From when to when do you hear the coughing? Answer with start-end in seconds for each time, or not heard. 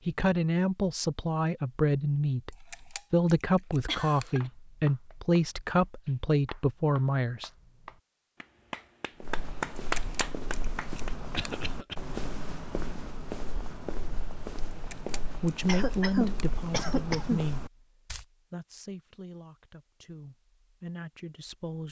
3.9-4.4, 11.3-11.9, 15.7-17.4.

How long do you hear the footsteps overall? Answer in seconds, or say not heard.
9 s.